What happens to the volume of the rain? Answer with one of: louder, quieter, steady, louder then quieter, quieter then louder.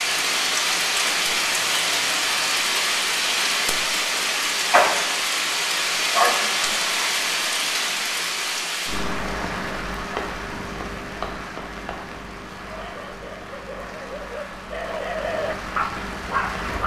quieter.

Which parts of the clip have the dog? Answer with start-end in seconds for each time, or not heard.
12.6-16.8.